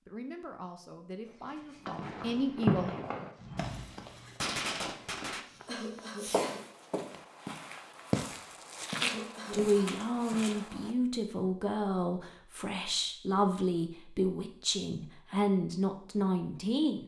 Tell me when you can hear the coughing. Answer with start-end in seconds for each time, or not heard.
5.7-6.7, 9.0-9.9.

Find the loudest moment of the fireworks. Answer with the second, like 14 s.
3 s.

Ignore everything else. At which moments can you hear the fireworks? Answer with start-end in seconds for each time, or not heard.
1.9-7.2.